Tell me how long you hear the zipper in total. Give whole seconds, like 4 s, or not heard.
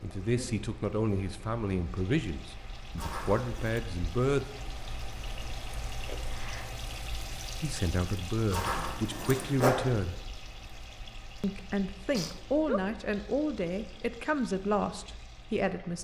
2 s.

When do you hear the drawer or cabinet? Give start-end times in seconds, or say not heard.
not heard.